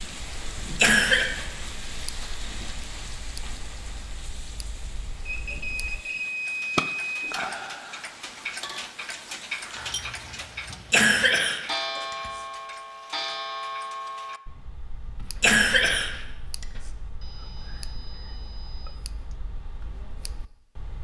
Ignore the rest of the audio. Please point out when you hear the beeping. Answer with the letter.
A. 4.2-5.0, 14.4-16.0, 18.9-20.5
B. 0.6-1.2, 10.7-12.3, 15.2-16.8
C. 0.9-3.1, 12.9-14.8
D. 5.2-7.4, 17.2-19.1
D.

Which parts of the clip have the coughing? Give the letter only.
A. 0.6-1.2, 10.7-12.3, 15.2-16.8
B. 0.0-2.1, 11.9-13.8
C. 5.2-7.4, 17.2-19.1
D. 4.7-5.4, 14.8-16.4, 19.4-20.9
A.